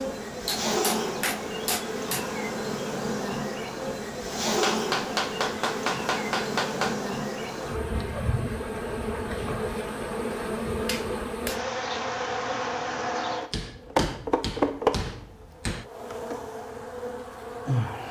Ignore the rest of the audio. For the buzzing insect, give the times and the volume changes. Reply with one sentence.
You can hear the buzzing insect from 0.0 to 18.0 s, at a steady volume.